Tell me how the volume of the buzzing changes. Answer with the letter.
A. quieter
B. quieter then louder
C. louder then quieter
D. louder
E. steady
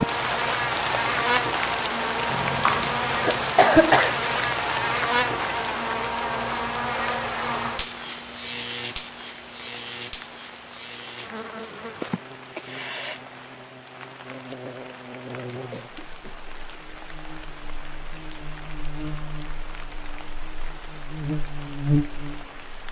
B.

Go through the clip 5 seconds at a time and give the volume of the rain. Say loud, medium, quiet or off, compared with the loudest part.
loud, medium, quiet, quiet, quiet.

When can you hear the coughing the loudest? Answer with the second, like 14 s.
4 s.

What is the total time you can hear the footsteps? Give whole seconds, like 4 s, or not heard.
not heard.